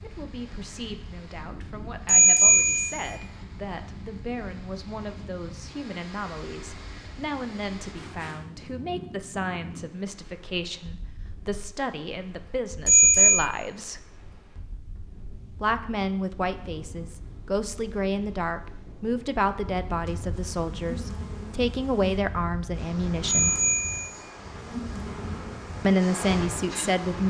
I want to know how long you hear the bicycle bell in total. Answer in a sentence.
The bicycle bell can be heard for 3 seconds in total.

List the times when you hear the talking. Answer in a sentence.
You can hear the talking from 0.0 to 14.1 s, from 15.6 to 23.6 s and from 25.8 to 27.2 s.